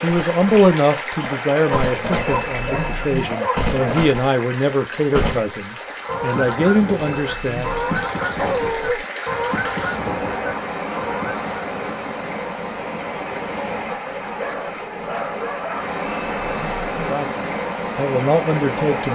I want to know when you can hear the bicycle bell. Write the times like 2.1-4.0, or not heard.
2.1-3.3, 7.0-8.1, 16.0-17.1.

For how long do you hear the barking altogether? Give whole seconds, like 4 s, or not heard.
5 s.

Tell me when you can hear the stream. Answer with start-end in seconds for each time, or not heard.
0.0-19.1.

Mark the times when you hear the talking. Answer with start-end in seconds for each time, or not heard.
0.0-7.8, 17.1-19.1.